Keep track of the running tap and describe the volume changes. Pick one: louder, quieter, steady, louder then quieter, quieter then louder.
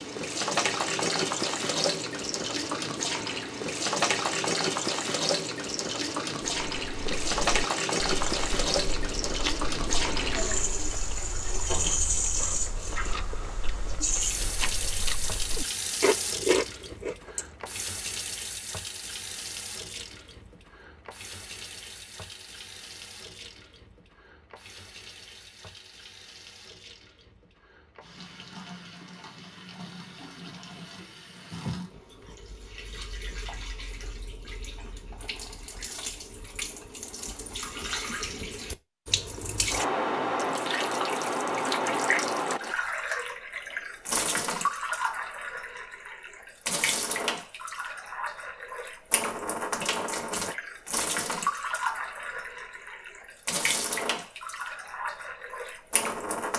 quieter then louder.